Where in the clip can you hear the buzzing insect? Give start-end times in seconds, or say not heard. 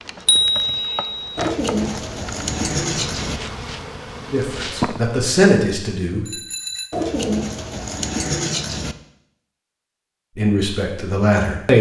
0.0-5.2.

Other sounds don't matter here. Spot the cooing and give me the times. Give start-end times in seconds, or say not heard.
1.4-3.4, 6.9-8.9.